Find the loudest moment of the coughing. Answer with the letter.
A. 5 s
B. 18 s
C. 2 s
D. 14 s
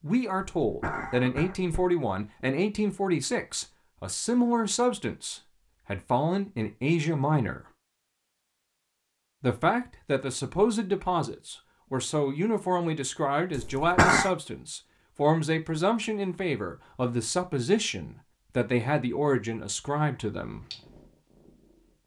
D.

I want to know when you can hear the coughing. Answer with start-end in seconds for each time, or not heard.
0.6-1.9, 13.6-14.3.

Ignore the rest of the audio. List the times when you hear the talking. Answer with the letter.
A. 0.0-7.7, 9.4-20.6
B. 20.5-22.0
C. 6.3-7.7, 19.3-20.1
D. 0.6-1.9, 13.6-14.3
A.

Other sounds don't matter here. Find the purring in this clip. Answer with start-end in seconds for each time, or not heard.
20.5-22.0.